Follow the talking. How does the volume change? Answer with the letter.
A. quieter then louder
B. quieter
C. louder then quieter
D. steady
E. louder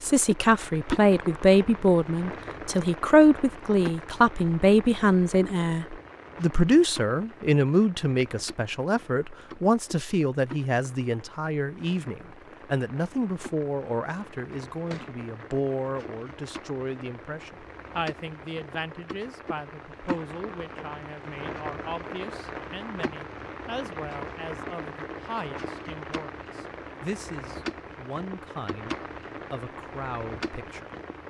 B.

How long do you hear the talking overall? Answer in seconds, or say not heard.
31 s.